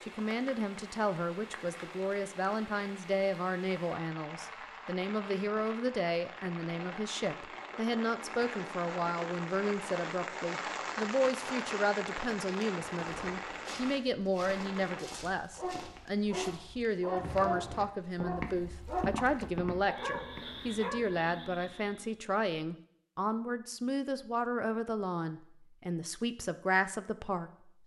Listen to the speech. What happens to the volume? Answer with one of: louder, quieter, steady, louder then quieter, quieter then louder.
steady.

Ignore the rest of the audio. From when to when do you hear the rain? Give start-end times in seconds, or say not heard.
0.0-15.1.